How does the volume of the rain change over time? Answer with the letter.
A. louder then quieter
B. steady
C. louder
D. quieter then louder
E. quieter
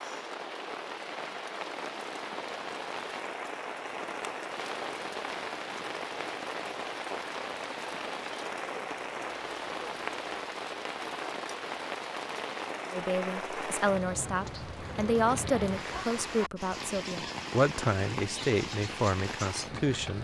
B.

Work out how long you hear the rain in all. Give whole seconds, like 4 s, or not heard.
20 s.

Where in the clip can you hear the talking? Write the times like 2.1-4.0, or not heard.
12.9-20.1.